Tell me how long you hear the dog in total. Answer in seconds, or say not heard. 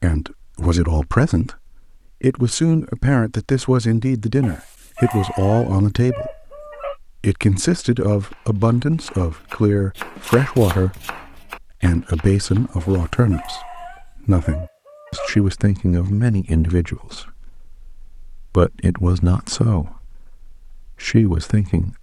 5 s.